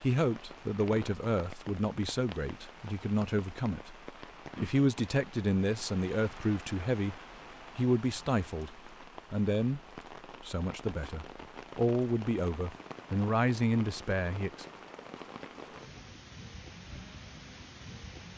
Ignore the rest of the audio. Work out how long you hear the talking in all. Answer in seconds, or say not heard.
15 s.